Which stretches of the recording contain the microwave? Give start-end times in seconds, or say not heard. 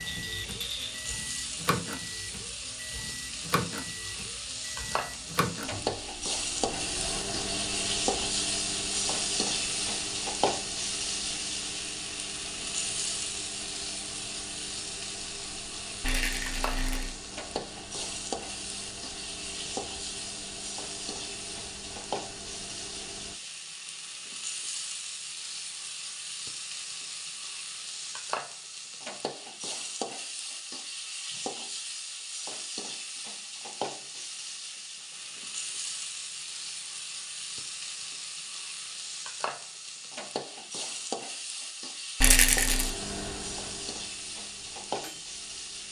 0.0-23.4, 42.6-45.8.